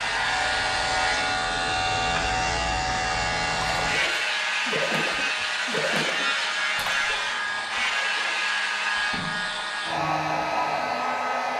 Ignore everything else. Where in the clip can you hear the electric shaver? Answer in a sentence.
The electric shaver can be heard from 0.0 to 9.2 s.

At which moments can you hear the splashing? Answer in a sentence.
The splashing can be heard from 3.8 to 10.3 s.